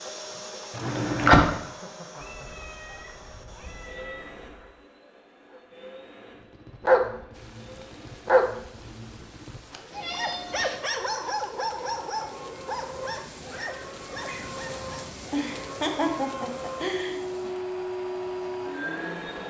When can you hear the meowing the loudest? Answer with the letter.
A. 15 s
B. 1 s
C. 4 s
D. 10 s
D.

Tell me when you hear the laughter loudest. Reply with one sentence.
The loudest moment of the laughter is at 1 second.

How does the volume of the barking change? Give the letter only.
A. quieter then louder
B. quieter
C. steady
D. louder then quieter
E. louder
B.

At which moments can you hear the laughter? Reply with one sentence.
The laughter can be heard from 0.8 to 1.4 s and from 15.3 to 17.1 s.